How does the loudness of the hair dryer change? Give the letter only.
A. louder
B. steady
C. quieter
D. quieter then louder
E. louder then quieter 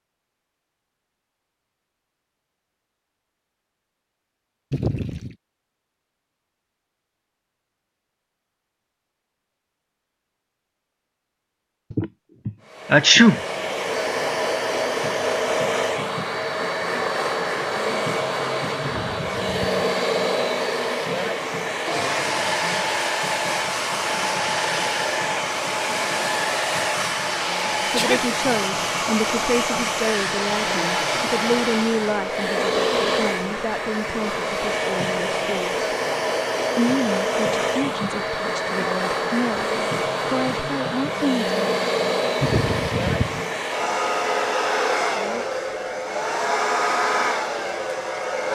B.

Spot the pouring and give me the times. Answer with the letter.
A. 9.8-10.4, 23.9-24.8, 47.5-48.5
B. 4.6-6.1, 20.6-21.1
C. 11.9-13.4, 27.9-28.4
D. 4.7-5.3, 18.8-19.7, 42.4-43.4
D.